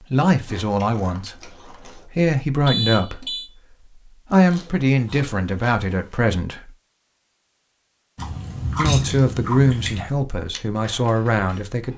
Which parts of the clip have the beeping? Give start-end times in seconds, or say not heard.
2.6-3.5.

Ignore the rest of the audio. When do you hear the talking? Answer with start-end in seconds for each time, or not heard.
0.1-6.7, 8.8-11.9.